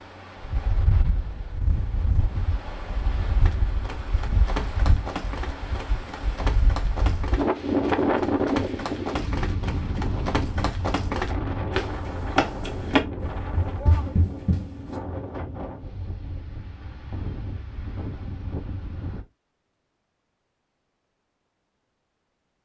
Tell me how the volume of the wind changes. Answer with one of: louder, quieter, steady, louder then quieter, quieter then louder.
louder then quieter.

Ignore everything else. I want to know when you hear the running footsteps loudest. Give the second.
13 s.